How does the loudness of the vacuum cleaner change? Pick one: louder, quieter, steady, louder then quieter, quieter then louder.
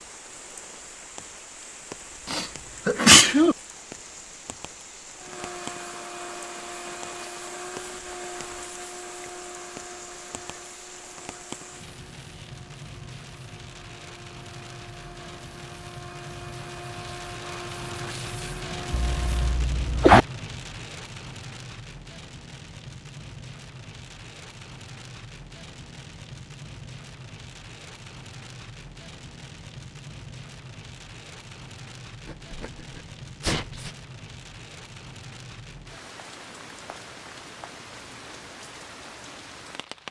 quieter then louder.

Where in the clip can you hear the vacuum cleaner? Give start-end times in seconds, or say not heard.
5.2-19.6.